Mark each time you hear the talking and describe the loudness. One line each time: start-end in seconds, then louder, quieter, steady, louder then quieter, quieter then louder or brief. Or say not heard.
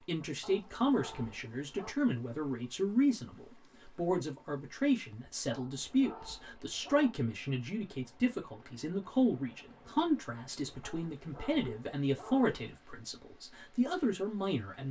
0.1-14.8 steady.